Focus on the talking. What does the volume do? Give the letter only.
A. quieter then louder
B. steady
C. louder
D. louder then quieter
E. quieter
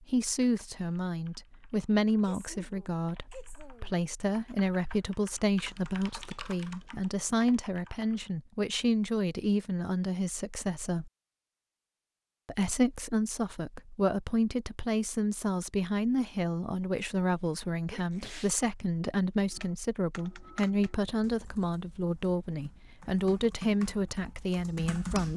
B.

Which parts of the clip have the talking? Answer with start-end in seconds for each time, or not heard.
0.1-11.1, 12.4-25.3.